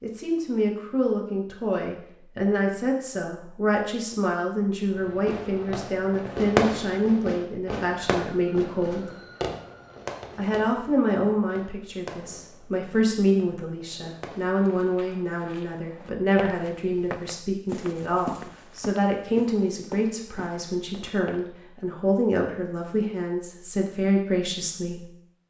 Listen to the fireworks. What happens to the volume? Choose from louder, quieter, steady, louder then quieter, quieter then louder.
quieter.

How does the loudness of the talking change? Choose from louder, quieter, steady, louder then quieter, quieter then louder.
steady.